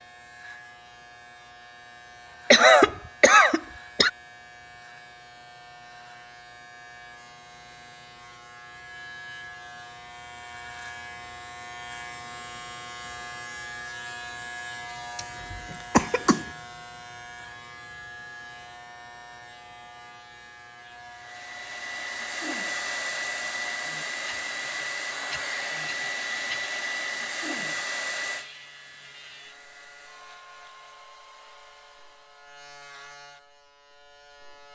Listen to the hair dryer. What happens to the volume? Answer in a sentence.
The loudness of the hair dryer goes down.